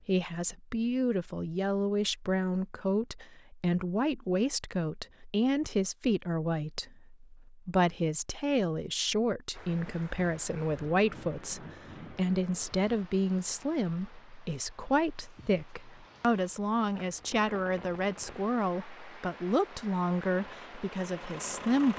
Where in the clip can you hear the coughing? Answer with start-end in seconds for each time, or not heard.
not heard.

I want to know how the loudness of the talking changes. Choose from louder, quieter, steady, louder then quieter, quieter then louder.
steady.